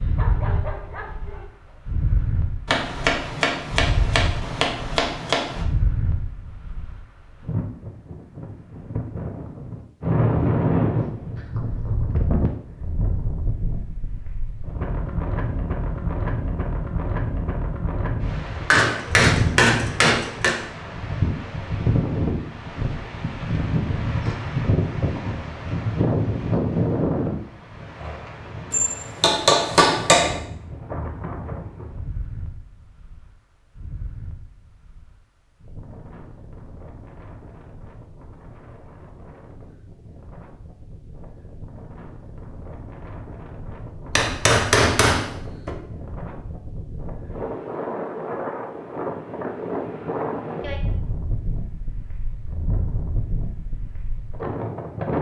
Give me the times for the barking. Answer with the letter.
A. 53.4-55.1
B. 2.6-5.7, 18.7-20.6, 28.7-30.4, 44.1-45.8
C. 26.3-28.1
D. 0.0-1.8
D.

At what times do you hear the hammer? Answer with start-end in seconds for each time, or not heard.
2.6-5.7, 18.7-20.6, 28.7-30.4, 44.1-45.8.